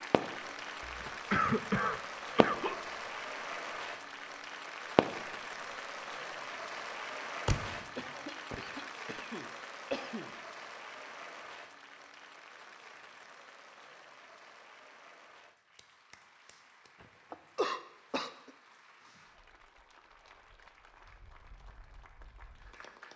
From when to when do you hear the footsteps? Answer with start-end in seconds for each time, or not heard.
not heard.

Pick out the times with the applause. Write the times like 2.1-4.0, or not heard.
0.0-23.1.